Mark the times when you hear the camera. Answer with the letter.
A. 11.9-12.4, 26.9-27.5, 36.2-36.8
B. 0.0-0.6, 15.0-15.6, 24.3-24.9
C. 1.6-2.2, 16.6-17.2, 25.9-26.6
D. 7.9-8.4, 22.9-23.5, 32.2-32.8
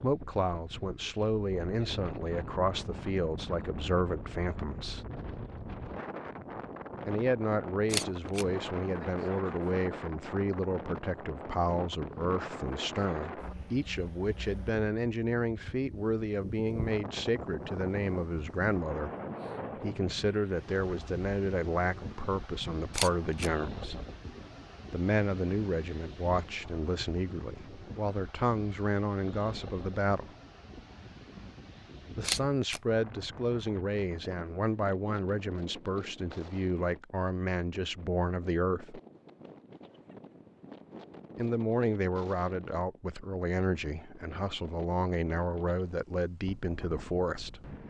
D.